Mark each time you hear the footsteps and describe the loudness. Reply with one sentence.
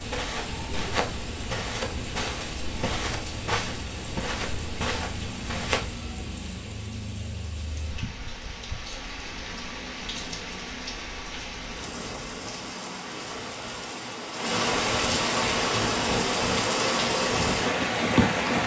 You can hear the footsteps from 0.0 to 6.0 s, at a steady volume.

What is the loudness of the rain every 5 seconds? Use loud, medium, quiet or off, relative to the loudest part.
quiet, quiet, medium, loud.